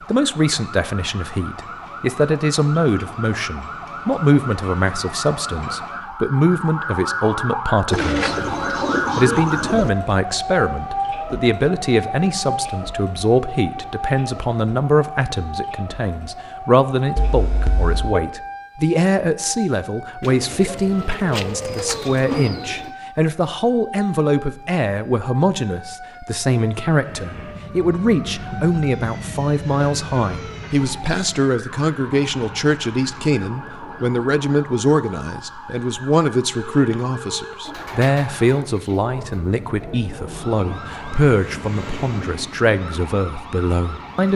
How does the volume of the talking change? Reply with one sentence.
The loudness of the talking stays about the same.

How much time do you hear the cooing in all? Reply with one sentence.
You can hear the cooing for 7 seconds altogether.